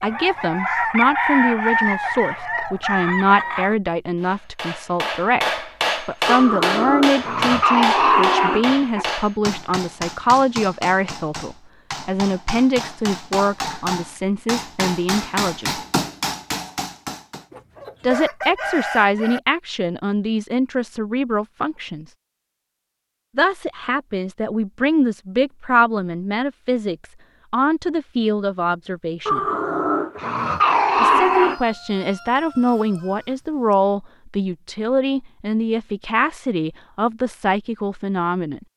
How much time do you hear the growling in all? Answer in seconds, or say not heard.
5 s.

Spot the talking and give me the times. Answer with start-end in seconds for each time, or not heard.
0.0-15.8, 18.0-22.1, 23.4-29.4, 31.0-38.6.